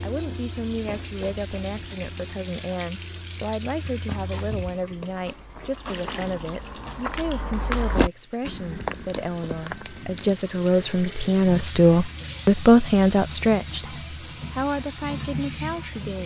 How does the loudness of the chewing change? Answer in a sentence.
The loudness of the chewing goes up, then down.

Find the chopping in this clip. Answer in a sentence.
The chopping can't be heard in this clip.